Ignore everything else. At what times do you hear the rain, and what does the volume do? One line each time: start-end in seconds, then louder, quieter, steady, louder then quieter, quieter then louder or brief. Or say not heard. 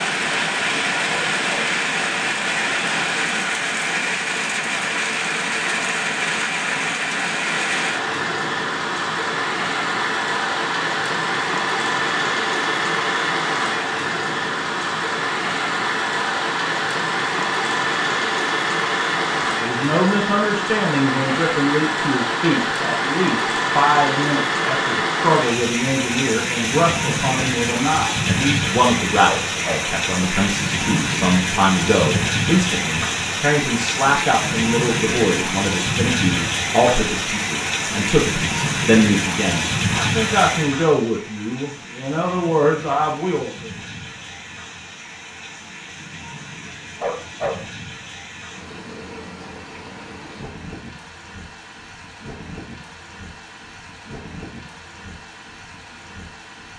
0.0-56.7 quieter.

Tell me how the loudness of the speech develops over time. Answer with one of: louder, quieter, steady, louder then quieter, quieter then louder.
steady.